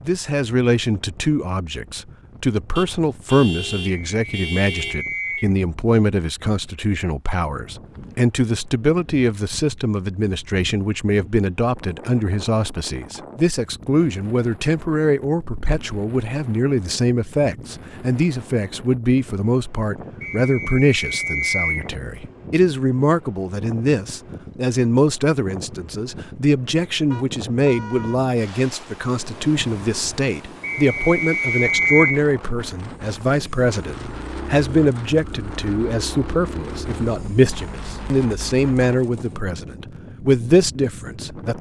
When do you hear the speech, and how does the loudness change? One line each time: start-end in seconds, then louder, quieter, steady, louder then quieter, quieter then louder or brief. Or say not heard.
0.0-41.5 steady.